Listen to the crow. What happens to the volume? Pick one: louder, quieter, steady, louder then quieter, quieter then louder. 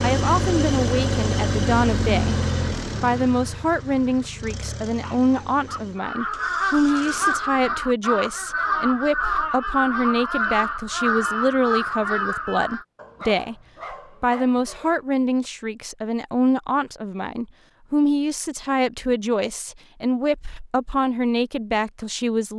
steady.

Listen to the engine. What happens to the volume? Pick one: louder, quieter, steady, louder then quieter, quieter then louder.
quieter.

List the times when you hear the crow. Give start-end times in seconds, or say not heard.
6.0-12.8.